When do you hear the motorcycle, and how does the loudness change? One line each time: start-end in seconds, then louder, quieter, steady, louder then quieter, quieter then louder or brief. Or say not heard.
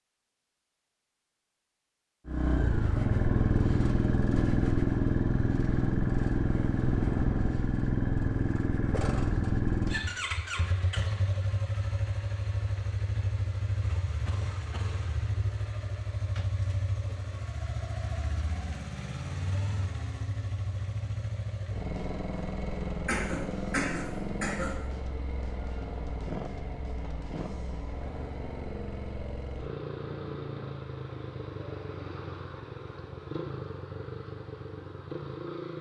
2.2-35.7 quieter.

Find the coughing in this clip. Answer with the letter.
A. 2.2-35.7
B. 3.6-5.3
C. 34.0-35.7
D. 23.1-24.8
D.